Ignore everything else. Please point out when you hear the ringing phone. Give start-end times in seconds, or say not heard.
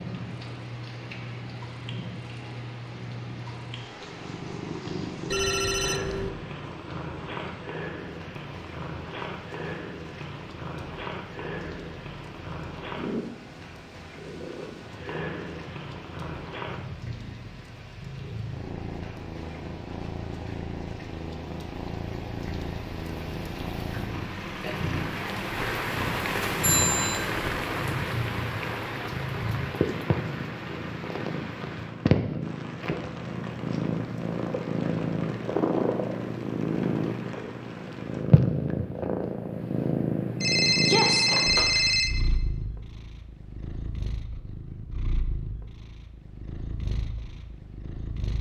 5.3-6.3, 26.6-27.3, 40.4-42.1.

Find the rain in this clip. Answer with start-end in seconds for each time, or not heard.
0.0-38.2.